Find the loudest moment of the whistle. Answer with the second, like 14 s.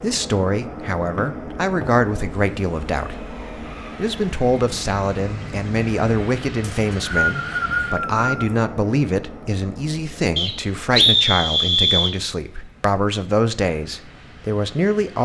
11 s.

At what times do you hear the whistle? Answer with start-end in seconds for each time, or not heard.
1.1-1.9, 6.6-8.5, 10.3-12.2.